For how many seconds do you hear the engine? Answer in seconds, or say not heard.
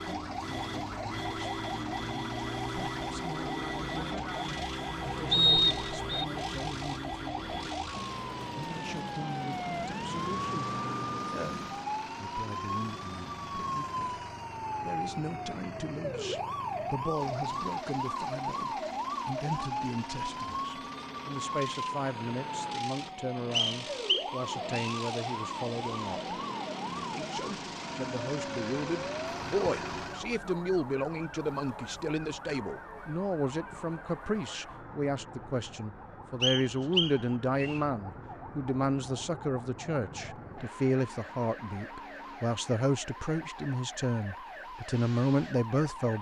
30 s.